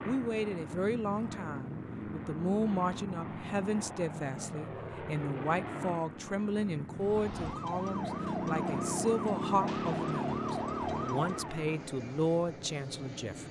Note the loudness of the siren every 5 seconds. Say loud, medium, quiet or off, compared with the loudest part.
off, loud, loud.